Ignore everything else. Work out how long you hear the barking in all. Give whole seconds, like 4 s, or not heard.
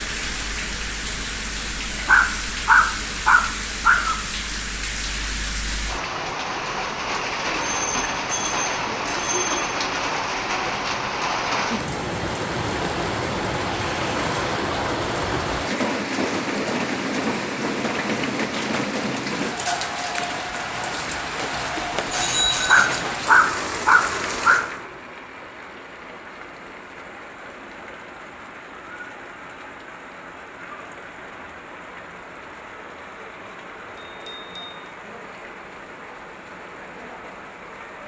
4 s.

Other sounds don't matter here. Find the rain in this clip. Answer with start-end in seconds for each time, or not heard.
0.0-38.0.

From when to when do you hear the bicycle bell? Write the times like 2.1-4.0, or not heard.
7.5-9.7, 21.9-23.0, 34.0-34.9.